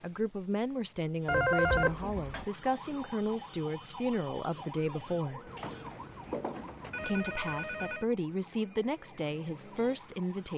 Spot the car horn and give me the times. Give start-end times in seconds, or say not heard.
not heard.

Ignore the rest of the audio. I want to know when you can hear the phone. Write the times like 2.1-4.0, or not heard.
1.2-2.5, 5.5-8.1.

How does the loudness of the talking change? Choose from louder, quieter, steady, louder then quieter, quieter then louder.
steady.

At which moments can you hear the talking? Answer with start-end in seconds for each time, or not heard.
0.0-5.5, 7.0-10.5.